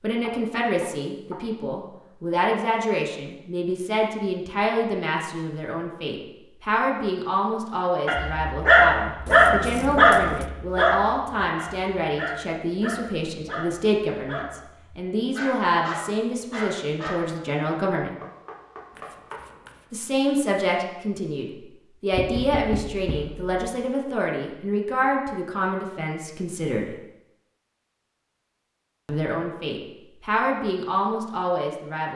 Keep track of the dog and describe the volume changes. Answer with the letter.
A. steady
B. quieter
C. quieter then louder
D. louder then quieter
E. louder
B.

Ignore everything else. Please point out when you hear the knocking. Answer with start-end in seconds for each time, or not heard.
0.2-1.4, 18.2-19.4, 22.1-23.5.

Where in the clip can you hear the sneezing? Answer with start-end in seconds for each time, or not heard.
not heard.